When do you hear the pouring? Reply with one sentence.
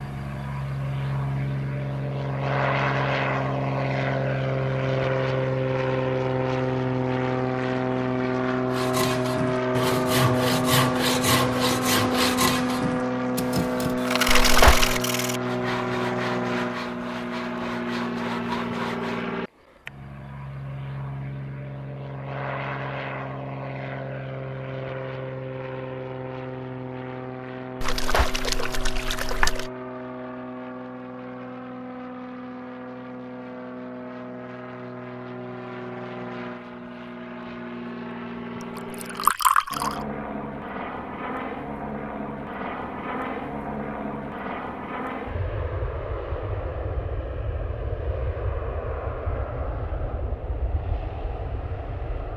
You can hear the pouring from 14.2 to 15.0 s, from 27.8 to 29.7 s and from 38.8 to 40.0 s.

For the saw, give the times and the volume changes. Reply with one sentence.
You can hear the saw from 8.7 to 19.4 s, getting quieter.